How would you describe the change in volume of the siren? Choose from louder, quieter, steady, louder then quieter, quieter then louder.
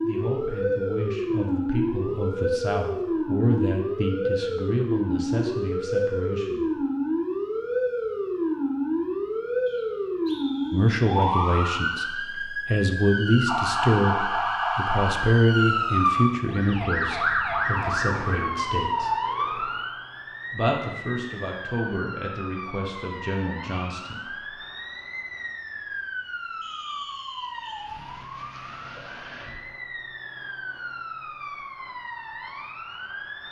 quieter.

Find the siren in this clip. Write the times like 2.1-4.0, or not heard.
0.0-33.4.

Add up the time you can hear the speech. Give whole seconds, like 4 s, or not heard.
19 s.